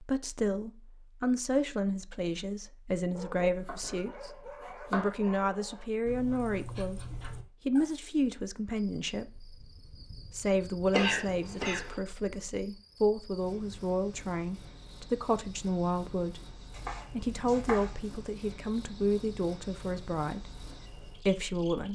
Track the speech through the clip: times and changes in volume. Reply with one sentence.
The speech can be heard from 0.0 to 21.8 s, at a steady volume.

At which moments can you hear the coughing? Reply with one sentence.
You can hear the coughing from 10.9 to 11.9 s.